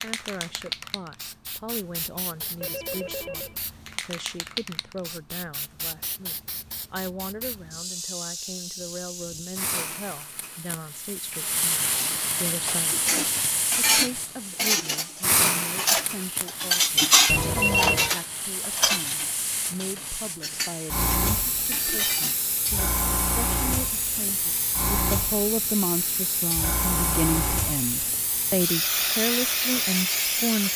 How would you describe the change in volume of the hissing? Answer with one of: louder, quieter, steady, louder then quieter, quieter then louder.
louder.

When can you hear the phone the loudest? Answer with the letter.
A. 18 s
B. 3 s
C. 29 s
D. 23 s
A.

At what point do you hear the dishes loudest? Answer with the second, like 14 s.
17 s.